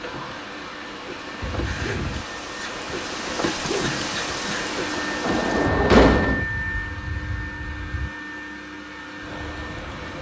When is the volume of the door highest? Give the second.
6 s.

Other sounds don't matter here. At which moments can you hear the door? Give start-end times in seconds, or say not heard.
1.4-2.3, 5.2-6.5.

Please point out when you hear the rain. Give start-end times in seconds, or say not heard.
0.0-10.1.